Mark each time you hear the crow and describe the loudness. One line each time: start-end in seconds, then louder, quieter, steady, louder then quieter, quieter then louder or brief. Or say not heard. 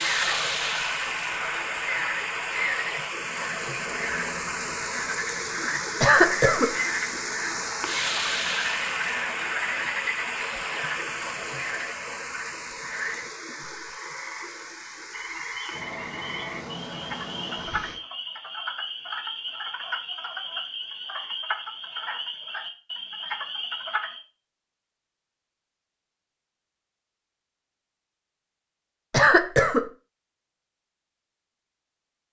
not heard.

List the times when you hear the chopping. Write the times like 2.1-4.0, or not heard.
not heard.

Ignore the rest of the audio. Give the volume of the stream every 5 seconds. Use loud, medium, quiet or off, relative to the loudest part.
loud, loud, medium, medium, off, off, off.